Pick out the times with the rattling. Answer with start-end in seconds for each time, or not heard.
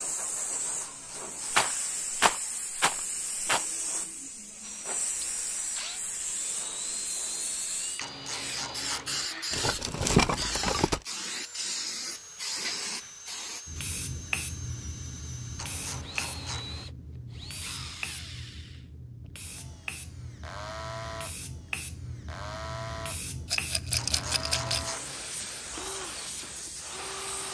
1.5-3.6, 9.5-11.0, 23.5-24.9.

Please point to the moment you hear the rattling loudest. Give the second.
10 s.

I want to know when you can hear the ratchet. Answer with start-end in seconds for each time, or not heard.
0.5-1.8, 8.0-9.3, 15.6-16.9, 23.9-25.2.